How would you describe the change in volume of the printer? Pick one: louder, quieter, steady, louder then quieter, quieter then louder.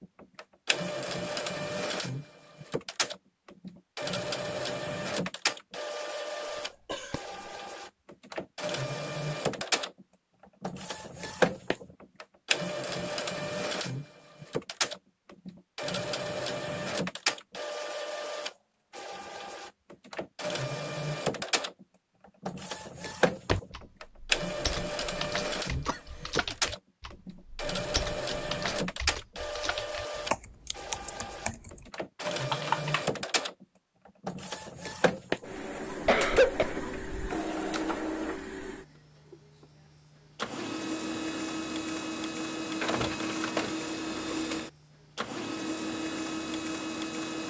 steady.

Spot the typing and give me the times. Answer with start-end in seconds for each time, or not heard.
23.4-33.0.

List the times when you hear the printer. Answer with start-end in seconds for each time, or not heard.
0.0-47.4.